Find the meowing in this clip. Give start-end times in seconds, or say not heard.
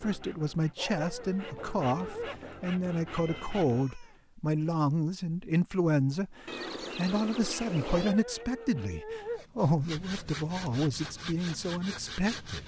3.0-4.2, 6.5-8.2.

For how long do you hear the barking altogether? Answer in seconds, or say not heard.
3 s.